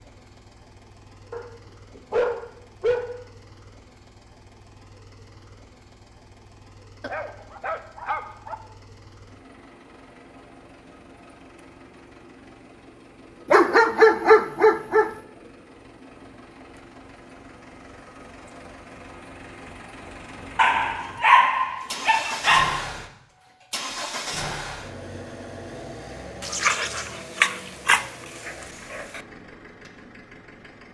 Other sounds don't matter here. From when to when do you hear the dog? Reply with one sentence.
You can hear the dog from 1.3 to 3.2 s, from 7.0 to 8.6 s, from 13.5 to 15.1 s, from 20.6 to 22.9 s and from 26.4 to 29.2 s.